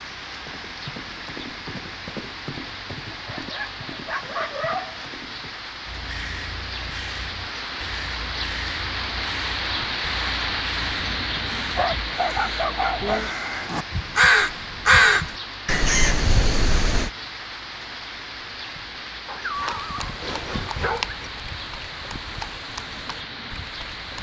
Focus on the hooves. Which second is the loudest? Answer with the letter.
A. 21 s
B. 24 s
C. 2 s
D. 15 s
A.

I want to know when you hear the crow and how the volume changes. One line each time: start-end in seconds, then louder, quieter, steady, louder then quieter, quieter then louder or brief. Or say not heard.
5.8-17.1 louder.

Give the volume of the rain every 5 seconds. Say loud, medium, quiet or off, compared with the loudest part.
medium, loud, loud, medium, medium.